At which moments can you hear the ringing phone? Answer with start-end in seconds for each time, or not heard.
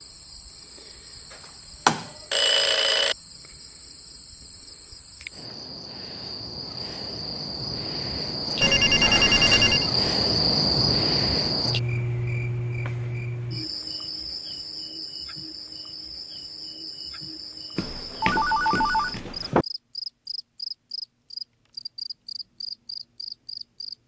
1.9-3.1, 8.6-9.9, 17.8-19.6.